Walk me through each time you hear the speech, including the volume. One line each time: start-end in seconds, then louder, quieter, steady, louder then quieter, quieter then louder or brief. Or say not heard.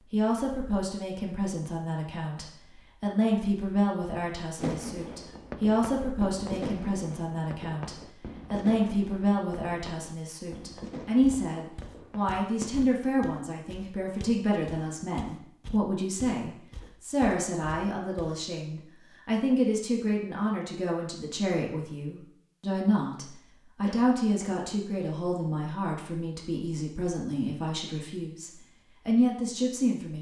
0.1-30.1 steady.